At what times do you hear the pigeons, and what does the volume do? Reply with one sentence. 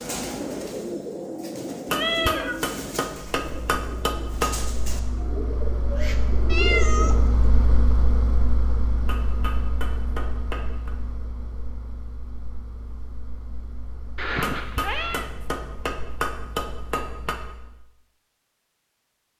The pigeons can be heard from 0.0 to 7.4 s, getting quieter then louder.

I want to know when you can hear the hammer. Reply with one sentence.
The hammer can be heard from 1.9 to 4.7 s, from 9.1 to 10.9 s and from 14.4 to 17.4 s.